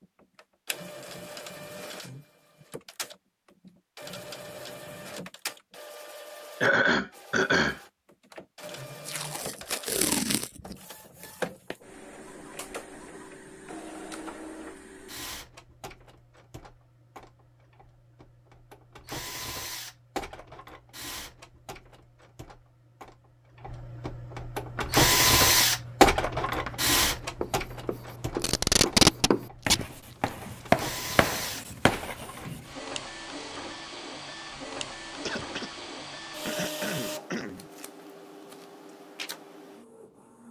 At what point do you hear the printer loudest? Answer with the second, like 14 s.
26 s.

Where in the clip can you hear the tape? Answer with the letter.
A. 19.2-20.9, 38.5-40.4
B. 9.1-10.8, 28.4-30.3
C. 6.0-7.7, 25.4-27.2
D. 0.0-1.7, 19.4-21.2
B.